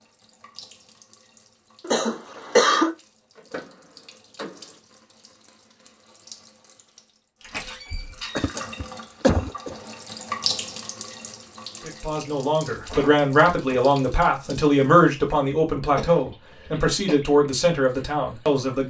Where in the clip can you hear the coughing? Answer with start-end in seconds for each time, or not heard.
1.8-3.0, 8.3-9.8, 15.9-17.1.